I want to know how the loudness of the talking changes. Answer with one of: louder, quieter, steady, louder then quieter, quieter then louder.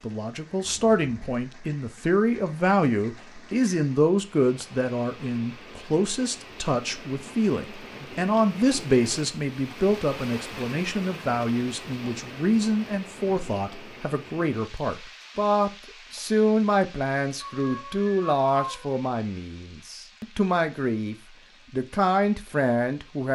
steady.